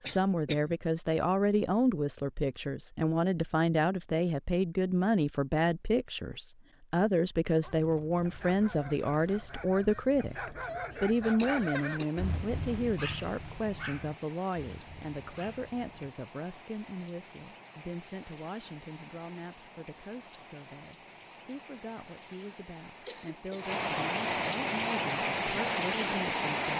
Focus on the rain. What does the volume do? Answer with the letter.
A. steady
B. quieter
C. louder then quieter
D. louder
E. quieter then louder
D.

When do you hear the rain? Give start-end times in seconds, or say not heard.
7.6-26.7.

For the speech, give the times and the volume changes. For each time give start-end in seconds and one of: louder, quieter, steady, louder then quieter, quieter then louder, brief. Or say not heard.
0.0-26.7 quieter.